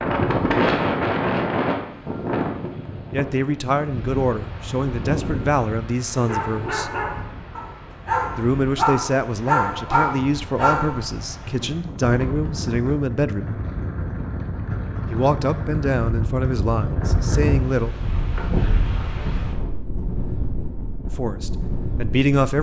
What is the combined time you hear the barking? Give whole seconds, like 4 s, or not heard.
5 s.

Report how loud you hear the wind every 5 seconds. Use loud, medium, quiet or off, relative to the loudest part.
loud, medium, medium, loud, medium.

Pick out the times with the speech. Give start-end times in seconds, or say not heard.
3.1-6.9, 8.3-13.6, 15.1-17.9, 21.1-22.5.